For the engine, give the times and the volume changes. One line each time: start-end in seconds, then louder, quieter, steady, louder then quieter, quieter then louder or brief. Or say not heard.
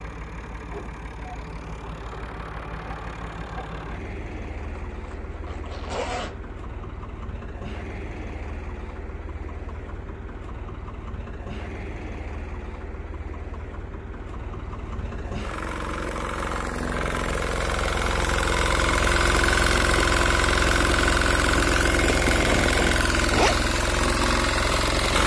0.0-25.2 louder.